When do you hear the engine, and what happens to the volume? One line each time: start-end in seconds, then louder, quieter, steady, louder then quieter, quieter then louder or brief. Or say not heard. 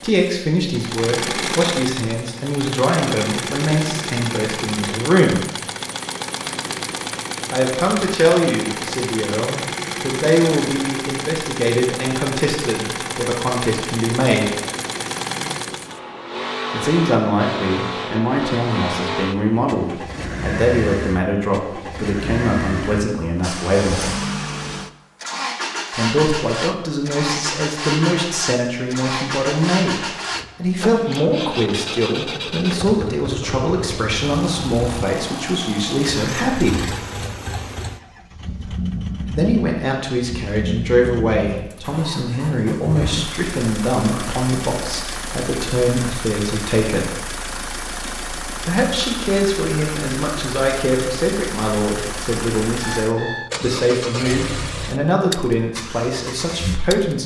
0.0-57.2 steady.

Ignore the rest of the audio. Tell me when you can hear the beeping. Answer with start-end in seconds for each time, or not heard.
52.8-53.5.